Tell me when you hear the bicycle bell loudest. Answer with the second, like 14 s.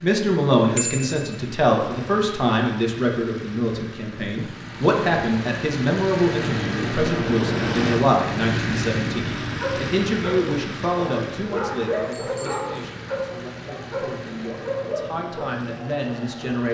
1 s.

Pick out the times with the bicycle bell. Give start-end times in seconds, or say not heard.
0.8-1.4, 11.8-12.7.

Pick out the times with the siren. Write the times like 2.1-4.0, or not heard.
not heard.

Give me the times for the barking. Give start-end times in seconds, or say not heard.
9.4-15.3.